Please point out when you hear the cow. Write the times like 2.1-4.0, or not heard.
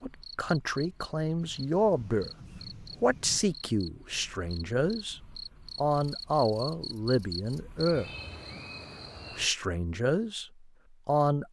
not heard.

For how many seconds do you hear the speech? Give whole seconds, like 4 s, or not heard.
9 s.